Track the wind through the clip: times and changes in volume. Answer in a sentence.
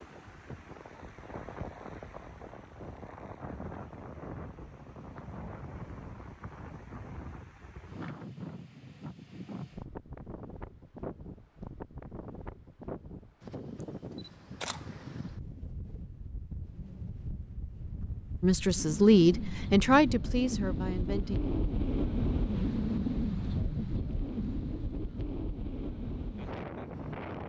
You can hear the wind from 0.0 to 27.4 s, getting louder.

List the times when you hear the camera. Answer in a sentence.
You can hear the camera from 13.9 to 15.1 s.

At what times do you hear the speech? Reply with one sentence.
You can hear the speech from 18.4 to 21.4 s.